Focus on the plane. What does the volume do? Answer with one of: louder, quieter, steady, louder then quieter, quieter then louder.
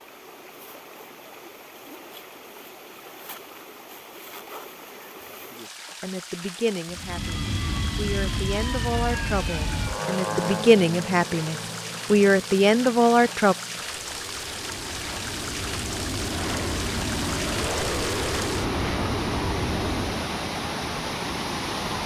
quieter then louder.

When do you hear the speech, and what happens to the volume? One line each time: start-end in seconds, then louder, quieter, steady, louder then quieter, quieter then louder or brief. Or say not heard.
6.0-13.6 louder.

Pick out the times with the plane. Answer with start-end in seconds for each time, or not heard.
6.8-20.4.